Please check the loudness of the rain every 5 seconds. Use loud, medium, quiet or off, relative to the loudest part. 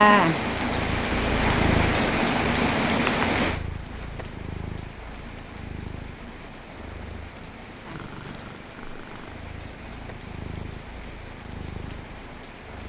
loud, quiet, quiet.